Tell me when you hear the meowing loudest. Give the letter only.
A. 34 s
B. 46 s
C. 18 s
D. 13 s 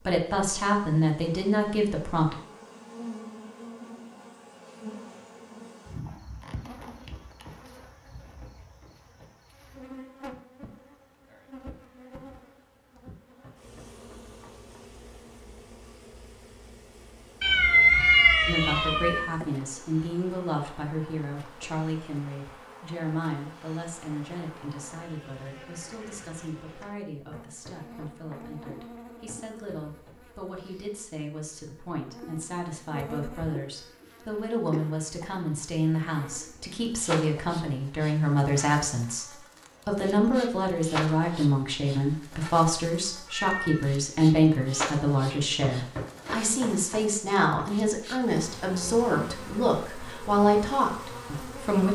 C.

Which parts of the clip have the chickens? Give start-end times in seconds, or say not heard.
not heard.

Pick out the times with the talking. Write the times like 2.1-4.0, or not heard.
0.1-2.4, 18.4-39.2, 39.9-51.9.